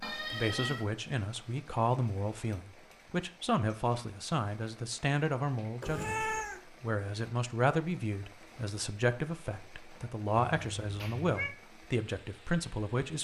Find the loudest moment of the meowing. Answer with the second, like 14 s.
6 s.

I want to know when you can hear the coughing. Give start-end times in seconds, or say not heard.
not heard.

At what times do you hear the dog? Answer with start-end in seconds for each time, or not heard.
not heard.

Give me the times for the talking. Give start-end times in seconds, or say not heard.
0.2-13.1.